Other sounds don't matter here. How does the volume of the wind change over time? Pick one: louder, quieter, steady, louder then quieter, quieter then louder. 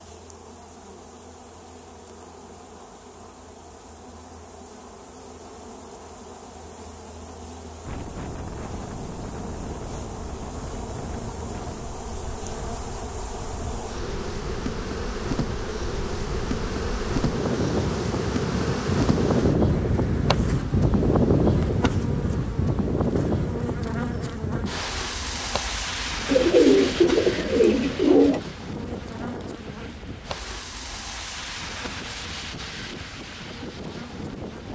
louder then quieter.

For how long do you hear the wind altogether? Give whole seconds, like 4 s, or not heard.
27 s.